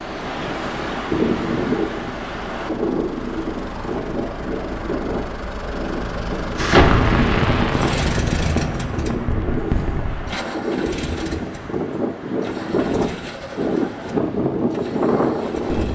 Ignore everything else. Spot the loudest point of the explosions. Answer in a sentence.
The volume of the explosions peaks at 7 seconds.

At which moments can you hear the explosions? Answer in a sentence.
The explosions can be heard from 6.5 to 10.3 s.